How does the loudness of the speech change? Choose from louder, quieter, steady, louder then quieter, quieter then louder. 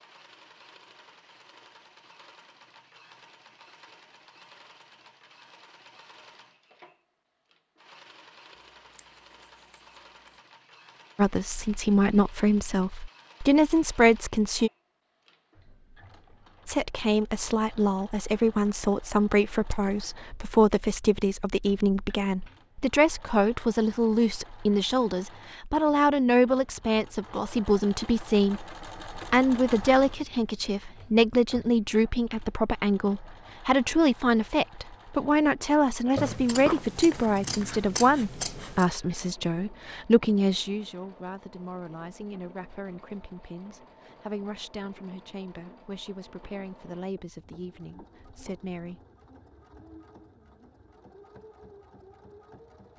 quieter.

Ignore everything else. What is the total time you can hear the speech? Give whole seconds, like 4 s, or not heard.
36 s.